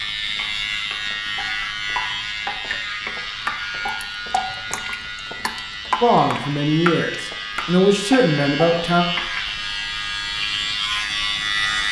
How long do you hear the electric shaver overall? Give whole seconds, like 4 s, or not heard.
12 s.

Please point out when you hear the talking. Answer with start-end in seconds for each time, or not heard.
6.0-9.1.